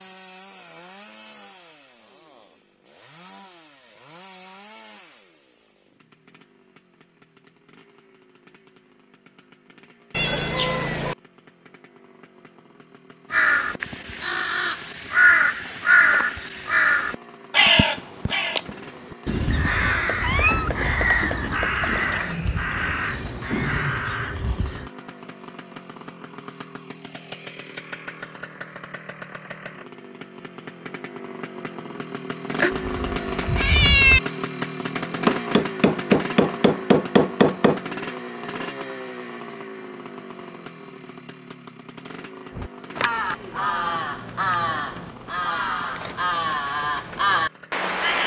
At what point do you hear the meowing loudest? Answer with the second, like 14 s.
34 s.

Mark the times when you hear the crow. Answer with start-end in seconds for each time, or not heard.
13.3-24.9, 42.5-48.2.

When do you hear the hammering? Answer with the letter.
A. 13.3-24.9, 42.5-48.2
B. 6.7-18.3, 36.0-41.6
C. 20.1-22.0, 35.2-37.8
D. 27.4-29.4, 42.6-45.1
C.